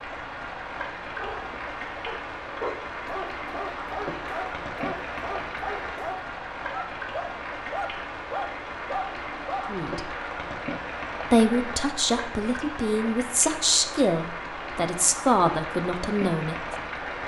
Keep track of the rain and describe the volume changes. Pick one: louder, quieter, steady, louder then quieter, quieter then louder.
steady.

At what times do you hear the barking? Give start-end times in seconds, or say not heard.
1.1-9.7.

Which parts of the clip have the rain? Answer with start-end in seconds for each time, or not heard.
0.0-17.2.